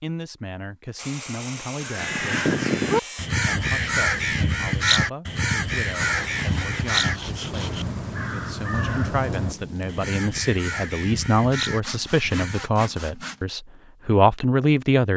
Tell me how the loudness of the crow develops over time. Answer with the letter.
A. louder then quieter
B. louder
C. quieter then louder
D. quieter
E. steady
D.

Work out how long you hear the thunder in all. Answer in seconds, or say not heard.
3 s.